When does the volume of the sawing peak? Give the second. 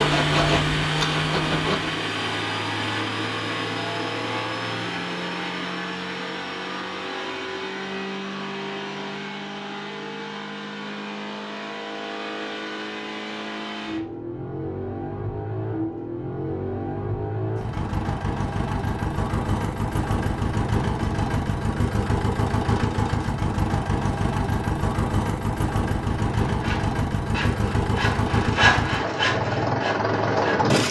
29 s.